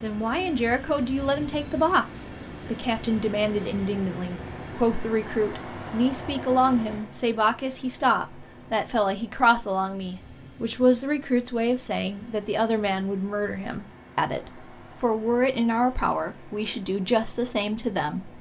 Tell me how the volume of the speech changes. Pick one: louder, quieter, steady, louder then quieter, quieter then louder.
steady.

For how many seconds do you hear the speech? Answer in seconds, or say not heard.
18 s.